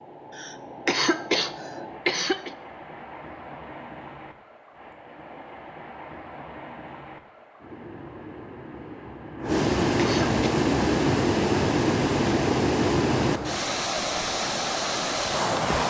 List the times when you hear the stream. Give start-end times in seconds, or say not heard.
0.0-15.8.